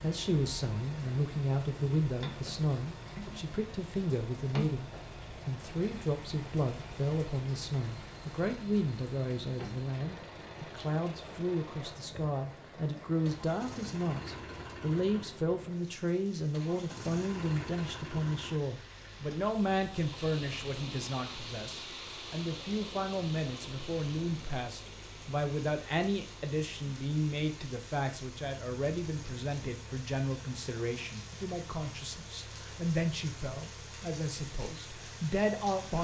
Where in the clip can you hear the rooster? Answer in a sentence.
You can't hear the rooster here.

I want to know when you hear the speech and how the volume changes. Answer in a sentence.
You can hear the speech from 0.0 to 35.9 s, at a steady volume.